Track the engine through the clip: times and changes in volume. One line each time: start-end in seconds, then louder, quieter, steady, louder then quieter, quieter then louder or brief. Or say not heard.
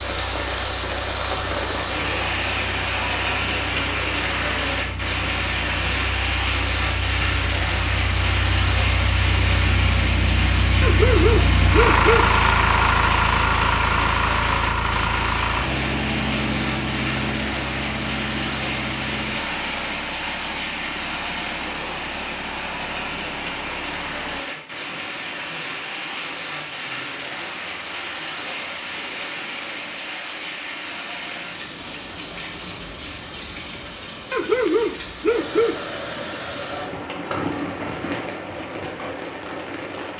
0.0-24.4 louder then quieter.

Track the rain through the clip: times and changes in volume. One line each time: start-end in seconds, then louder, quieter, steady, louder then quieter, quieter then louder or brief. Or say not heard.
0.0-40.1 quieter.